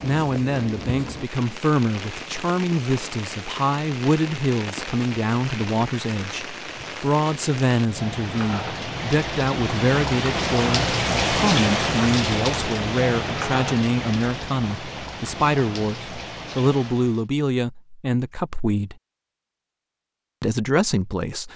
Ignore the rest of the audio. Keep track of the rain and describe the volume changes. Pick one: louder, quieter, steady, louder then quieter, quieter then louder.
louder then quieter.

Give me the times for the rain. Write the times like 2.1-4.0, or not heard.
0.0-17.2.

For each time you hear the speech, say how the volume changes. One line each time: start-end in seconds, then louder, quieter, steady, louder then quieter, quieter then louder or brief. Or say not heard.
0.0-18.9 steady
20.4-21.5 brief.